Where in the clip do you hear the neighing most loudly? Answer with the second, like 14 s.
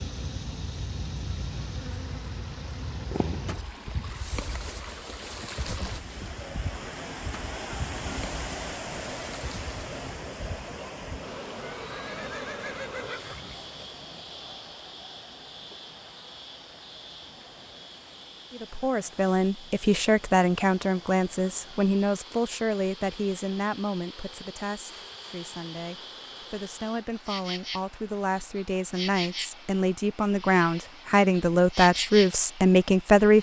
13 s.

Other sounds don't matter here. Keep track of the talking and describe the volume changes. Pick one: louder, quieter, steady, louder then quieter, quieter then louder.
quieter then louder.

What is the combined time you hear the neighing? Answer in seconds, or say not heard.
2 s.